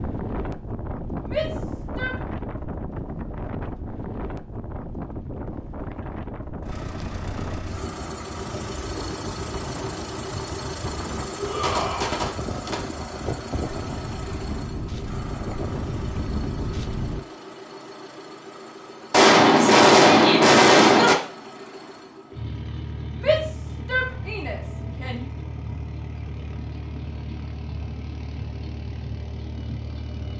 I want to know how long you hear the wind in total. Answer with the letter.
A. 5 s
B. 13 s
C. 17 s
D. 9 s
C.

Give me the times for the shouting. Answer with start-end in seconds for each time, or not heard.
1.2-2.2, 11.3-12.1, 23.1-25.2.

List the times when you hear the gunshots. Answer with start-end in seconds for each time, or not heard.
10.8-12.8, 19.1-21.1.